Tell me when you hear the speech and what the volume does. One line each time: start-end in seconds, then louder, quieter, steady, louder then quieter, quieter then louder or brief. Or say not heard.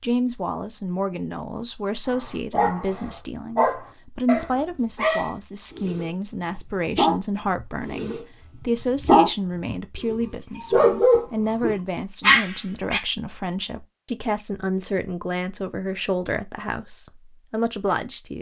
0.0-18.3 steady.